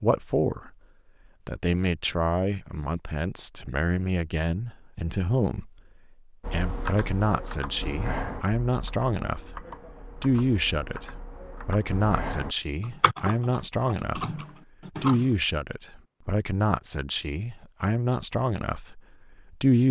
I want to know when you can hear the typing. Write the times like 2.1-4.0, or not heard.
6.4-15.3.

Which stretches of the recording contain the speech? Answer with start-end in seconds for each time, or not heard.
0.0-0.7, 1.4-5.7, 6.5-9.6, 10.2-14.3, 15.0-19.8.